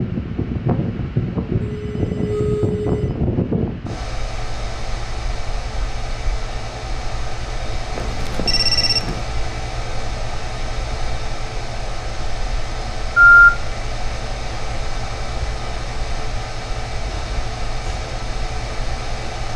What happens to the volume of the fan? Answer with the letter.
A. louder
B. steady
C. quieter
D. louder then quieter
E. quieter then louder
C.